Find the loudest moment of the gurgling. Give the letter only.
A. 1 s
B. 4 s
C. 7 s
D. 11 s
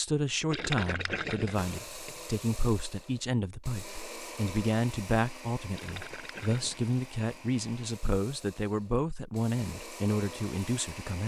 A.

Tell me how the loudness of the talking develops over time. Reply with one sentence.
The loudness of the talking stays about the same.